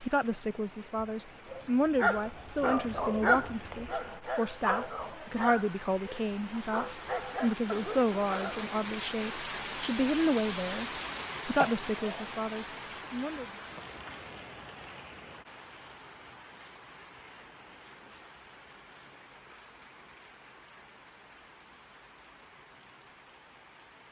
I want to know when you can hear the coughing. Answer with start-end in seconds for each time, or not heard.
11.6-12.2.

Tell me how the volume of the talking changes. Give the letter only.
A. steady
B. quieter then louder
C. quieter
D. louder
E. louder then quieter
A.